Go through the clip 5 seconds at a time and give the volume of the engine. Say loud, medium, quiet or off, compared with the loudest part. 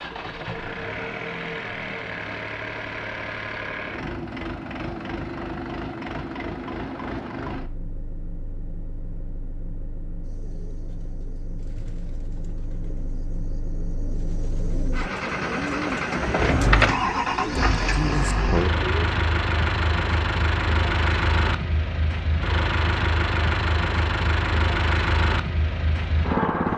medium, medium, quiet, loud, loud, loud.